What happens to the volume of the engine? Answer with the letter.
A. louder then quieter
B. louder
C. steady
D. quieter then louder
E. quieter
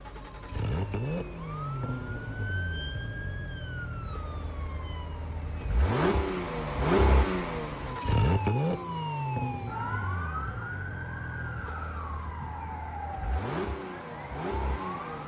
A.